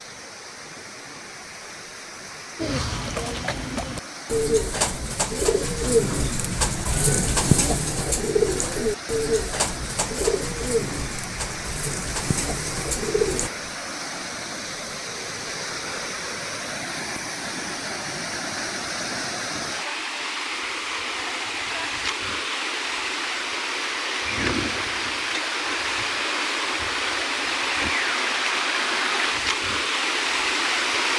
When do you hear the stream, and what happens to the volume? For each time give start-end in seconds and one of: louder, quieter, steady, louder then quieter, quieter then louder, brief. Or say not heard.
0.0-31.1 louder.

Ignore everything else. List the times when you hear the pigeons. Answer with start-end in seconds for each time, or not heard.
2.5-13.5.